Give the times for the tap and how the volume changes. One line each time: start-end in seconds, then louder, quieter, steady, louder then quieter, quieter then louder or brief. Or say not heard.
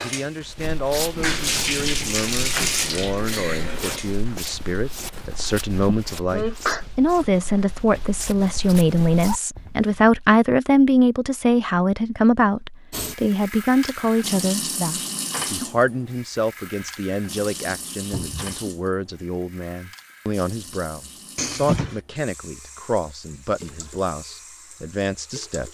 0.0-5.1 louder then quieter
12.9-25.6 quieter.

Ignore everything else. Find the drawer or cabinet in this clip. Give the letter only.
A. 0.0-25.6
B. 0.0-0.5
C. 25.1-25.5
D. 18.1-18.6
D.